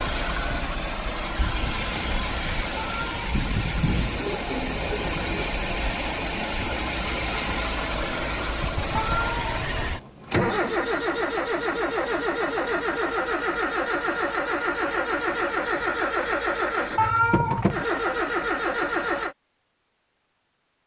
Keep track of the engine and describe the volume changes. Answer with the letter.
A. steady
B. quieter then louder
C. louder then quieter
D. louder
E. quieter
A.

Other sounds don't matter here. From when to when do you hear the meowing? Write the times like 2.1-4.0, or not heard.
2.8-3.2, 8.9-9.7, 16.9-17.8.